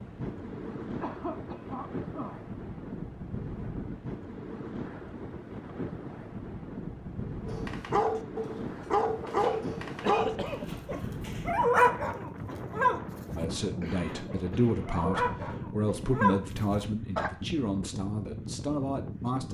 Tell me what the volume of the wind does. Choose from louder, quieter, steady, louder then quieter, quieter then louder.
steady.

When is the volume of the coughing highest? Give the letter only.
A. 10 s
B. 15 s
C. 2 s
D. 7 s
A.